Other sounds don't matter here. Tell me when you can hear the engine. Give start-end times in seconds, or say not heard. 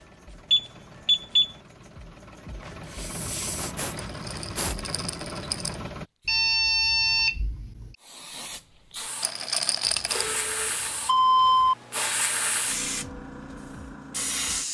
0.0-6.0.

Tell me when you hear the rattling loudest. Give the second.
10 s.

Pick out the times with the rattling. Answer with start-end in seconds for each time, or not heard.
4.0-5.8, 9.2-10.3.